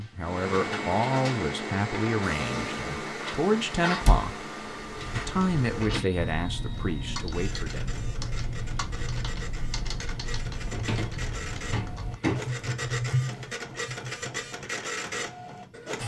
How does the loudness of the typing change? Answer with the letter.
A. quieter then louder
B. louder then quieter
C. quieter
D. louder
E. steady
D.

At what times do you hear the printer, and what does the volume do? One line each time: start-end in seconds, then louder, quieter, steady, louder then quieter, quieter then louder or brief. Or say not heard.
0.0-16.0 quieter then louder.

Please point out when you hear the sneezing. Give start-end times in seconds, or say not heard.
not heard.